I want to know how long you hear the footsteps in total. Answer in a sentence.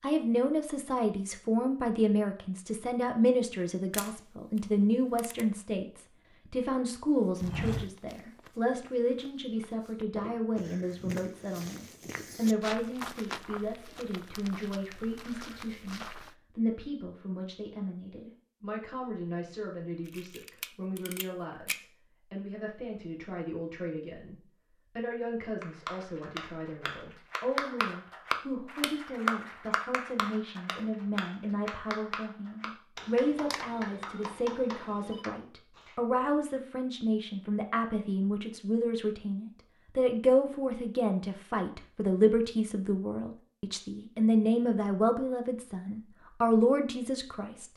You can hear the footsteps for 9 seconds altogether.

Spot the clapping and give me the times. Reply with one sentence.
The clapping can be heard from 25.4 to 36.0 s.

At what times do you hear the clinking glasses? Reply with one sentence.
You can't hear the clinking glasses here.